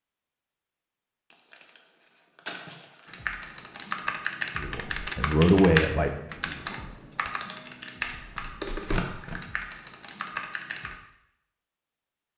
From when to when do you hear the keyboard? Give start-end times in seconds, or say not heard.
3.0-10.9.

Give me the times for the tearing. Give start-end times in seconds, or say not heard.
1.3-3.3, 8.0-9.4.